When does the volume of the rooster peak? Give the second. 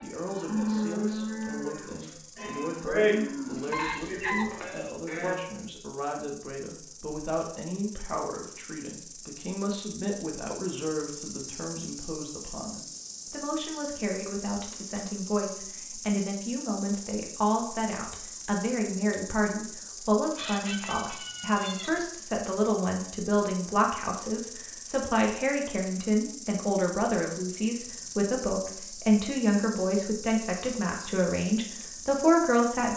4 s.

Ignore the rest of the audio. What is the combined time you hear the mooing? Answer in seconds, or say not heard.
5 s.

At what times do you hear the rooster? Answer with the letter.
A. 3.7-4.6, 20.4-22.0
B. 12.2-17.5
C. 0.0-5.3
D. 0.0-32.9
A.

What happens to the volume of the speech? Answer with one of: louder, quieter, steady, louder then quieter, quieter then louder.
louder.